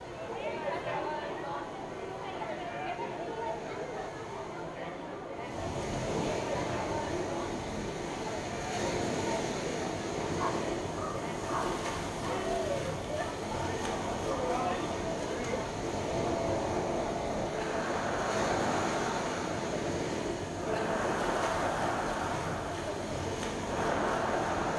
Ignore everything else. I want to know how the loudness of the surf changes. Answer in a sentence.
The loudness of the surf goes up.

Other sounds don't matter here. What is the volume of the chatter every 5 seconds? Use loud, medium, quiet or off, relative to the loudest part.
loud, medium, loud, loud, loud.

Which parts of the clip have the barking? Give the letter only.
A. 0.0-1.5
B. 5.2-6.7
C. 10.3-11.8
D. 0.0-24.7
C.